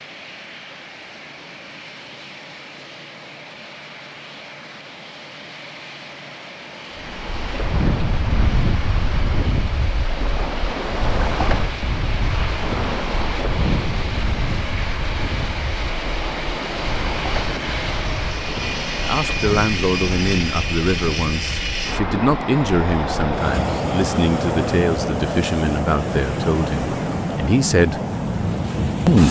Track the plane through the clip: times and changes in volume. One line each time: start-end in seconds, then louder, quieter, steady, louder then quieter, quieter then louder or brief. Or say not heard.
0.0-29.2 louder.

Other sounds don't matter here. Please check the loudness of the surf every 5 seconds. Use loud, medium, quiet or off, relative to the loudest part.
off, loud, loud, medium, loud, loud.